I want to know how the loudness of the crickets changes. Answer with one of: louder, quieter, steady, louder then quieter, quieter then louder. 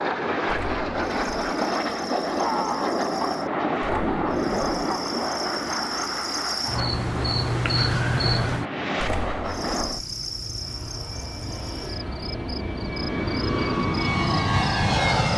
louder then quieter.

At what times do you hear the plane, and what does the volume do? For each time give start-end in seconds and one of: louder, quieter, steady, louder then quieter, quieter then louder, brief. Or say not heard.
0.0-15.3 quieter then louder.